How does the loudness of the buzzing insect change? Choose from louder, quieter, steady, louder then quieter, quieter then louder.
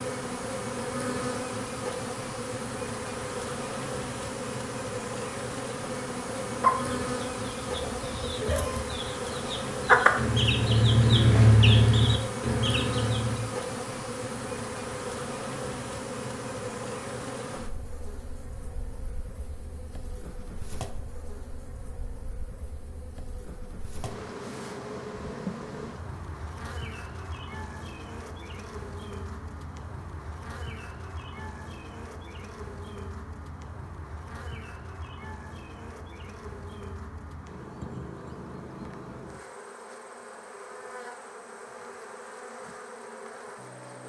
quieter.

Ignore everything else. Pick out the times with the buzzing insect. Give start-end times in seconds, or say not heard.
0.0-44.0.